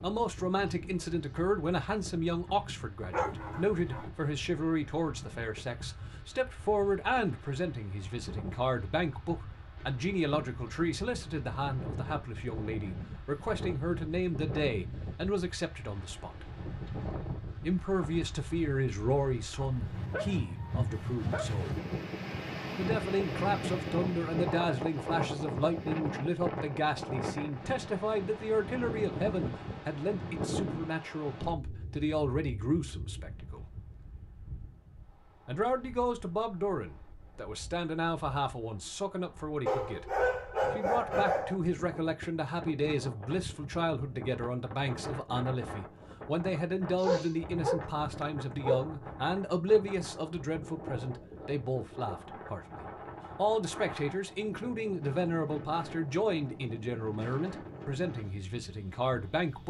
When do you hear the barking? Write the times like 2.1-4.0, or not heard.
3.1-4.1, 19.9-21.6, 39.6-41.6, 47.0-48.9.